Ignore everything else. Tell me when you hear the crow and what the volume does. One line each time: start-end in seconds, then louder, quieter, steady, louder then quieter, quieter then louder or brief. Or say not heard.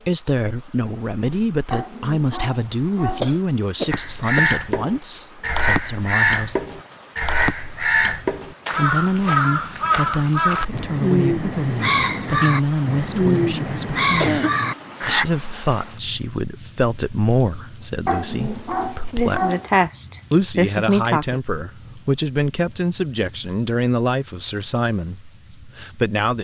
3.9-15.2 steady.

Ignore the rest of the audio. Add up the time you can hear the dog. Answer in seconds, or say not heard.
3 s.